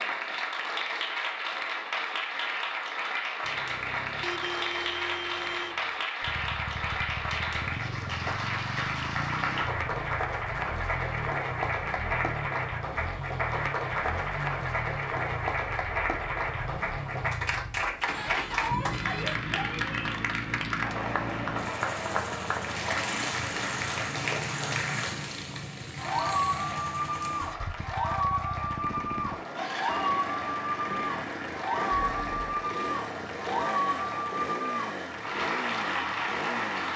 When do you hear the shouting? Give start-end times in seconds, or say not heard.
18.1-20.0.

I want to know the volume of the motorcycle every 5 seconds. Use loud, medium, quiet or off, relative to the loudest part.
off, loud, loud, loud, loud, loud, loud, loud.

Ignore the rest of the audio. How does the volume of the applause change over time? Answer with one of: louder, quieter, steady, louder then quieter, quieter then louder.
steady.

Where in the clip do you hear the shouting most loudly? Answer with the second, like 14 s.
19 s.